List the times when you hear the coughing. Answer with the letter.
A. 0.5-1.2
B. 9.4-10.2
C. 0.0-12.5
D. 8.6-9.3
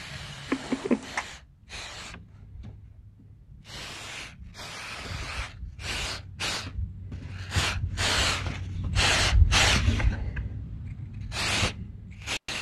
A.